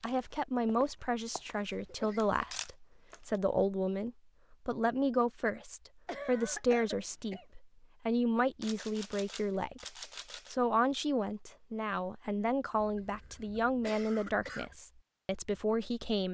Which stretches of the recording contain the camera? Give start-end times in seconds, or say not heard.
1.7-3.4, 8.6-10.6.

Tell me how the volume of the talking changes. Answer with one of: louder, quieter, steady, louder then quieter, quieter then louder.
steady.